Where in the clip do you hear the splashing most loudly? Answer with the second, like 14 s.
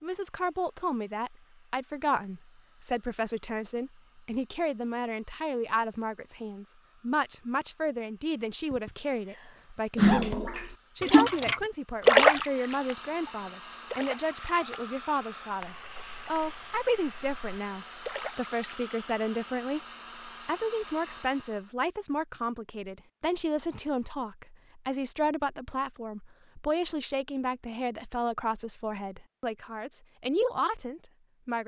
12 s.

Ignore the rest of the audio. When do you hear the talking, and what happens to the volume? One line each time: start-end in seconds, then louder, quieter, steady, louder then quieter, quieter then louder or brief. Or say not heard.
0.0-31.6 steady.